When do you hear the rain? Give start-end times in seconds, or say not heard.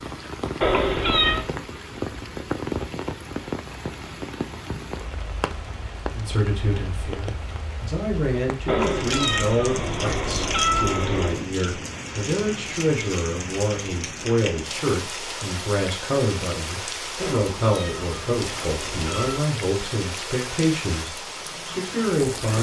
0.0-22.5.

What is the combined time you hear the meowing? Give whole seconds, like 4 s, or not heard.
6 s.